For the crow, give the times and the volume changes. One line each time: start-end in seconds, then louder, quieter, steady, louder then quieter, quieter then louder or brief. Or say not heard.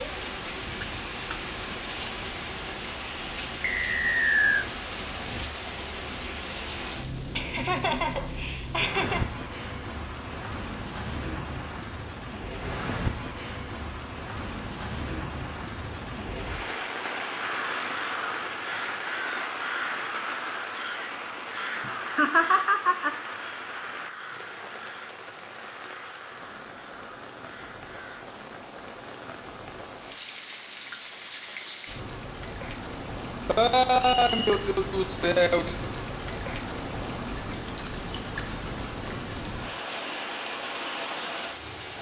17.4-28.2 quieter.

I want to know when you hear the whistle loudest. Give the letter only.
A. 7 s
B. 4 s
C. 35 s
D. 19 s
B.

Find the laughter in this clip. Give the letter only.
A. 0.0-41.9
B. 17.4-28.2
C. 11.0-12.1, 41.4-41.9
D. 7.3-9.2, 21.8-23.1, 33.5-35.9
D.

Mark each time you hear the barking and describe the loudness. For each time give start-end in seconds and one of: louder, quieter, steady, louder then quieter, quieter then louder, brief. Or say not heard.
not heard.